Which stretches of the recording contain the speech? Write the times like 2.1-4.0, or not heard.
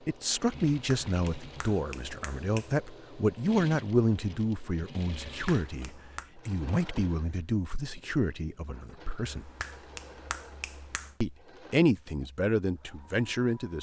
0.1-9.4, 11.2-13.7.